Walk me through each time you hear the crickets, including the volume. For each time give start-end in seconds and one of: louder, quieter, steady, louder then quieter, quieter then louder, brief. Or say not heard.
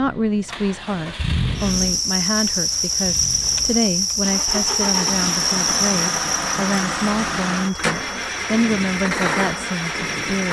1.6-10.4 quieter.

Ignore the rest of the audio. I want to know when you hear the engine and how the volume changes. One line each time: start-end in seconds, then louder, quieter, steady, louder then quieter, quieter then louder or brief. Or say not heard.
0.0-10.4 quieter then louder.